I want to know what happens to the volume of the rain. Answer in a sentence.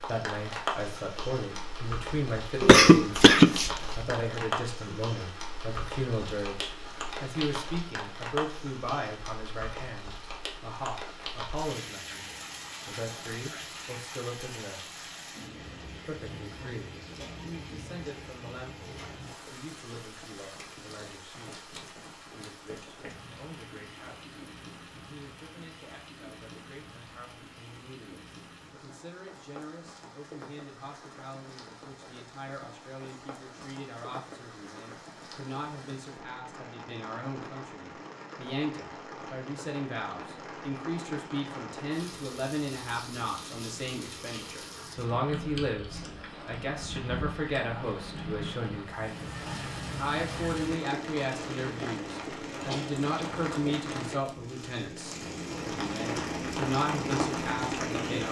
The volume of the rain goes down, then up.